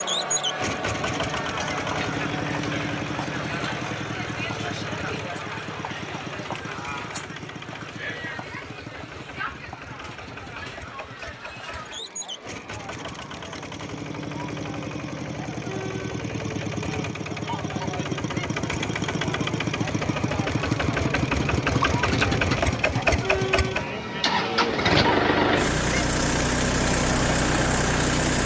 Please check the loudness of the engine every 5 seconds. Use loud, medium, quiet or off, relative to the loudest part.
medium, quiet, quiet, medium, loud, loud.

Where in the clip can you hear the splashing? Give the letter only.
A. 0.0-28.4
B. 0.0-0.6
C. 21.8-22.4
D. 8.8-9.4
C.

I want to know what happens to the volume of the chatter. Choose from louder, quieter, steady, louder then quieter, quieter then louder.
quieter then louder.